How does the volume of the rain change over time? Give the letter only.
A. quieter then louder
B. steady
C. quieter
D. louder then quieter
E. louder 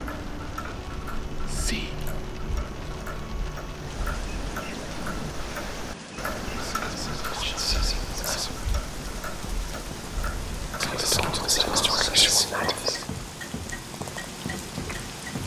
B.